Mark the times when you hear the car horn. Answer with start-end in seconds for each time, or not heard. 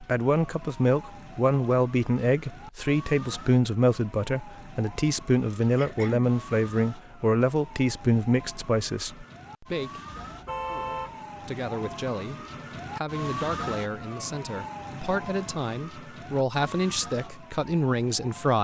10.2-11.2.